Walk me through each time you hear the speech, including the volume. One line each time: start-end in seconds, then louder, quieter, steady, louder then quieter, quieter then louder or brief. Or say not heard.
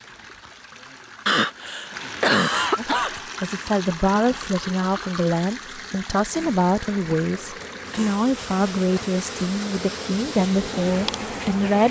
2.8-11.8 steady.